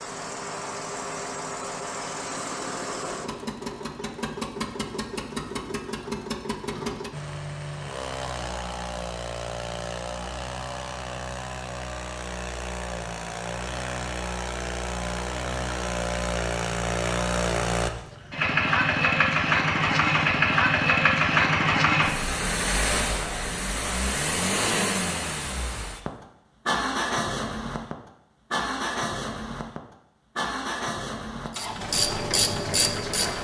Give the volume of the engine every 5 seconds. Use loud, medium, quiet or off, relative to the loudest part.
medium, medium, medium, loud, loud, medium, medium.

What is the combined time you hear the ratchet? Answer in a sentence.
You can hear the ratchet for 2 seconds altogether.